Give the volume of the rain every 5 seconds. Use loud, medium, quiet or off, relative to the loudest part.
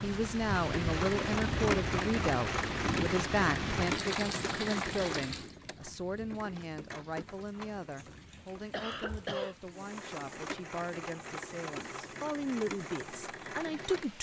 loud, quiet, quiet.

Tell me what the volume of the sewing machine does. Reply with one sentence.
The volume of the sewing machine goes down, then up.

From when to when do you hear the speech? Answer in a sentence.
You can hear the speech from 0.0 to 14.1 s.